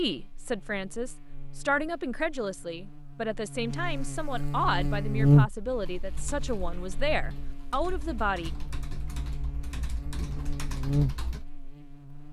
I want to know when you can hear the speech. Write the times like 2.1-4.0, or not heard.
0.0-8.5.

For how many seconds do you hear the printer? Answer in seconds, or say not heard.
not heard.